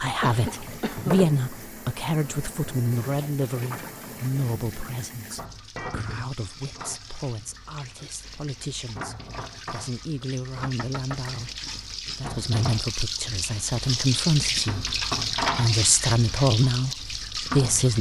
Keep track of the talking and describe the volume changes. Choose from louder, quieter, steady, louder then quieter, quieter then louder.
quieter then louder.